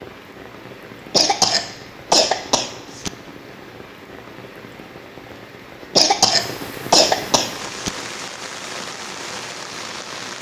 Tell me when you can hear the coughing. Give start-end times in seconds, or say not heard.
1.1-3.1, 6.0-7.9.